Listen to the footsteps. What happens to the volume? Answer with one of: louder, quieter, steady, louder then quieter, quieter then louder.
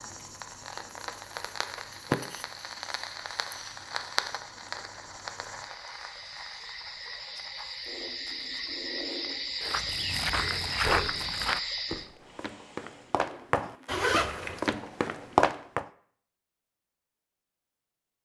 quieter then louder.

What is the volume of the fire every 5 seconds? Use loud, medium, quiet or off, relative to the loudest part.
loud, medium, quiet, off.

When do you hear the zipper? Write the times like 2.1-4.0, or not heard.
13.8-14.7.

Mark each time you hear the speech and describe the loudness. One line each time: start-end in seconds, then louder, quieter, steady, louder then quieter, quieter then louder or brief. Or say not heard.
not heard.